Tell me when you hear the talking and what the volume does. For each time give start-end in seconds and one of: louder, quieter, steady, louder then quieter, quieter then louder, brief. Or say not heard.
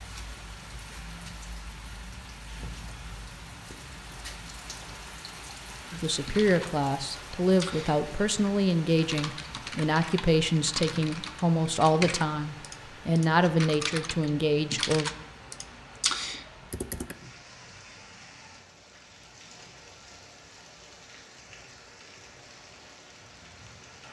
5.9-15.1 steady.